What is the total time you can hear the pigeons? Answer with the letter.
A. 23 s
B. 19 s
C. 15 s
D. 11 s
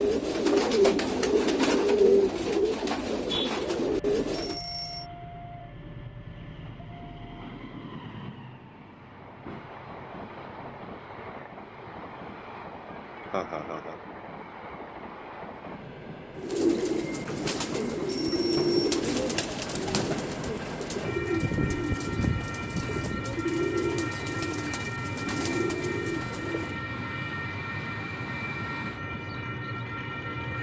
C.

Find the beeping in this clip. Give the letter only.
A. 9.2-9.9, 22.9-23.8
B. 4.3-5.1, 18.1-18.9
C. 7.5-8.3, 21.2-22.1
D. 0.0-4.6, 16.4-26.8
B.